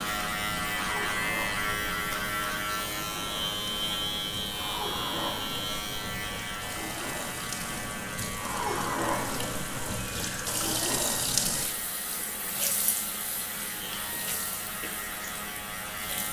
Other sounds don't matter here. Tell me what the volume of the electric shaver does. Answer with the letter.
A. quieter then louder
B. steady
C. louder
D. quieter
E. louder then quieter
D.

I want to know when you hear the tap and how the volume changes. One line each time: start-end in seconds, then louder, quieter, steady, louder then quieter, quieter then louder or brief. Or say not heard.
0.0-16.2 louder then quieter.